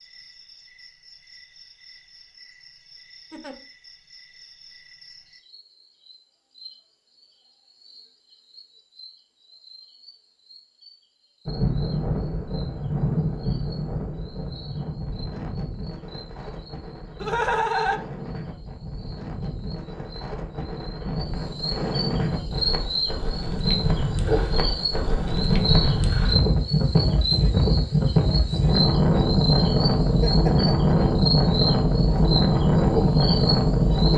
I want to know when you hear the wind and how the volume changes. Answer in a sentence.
You can hear the wind from 11.4 to 34.1 s, getting quieter then louder.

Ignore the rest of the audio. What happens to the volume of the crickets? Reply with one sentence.
The loudness of the crickets goes up.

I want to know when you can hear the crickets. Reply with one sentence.
You can hear the crickets from 0.0 to 34.1 s.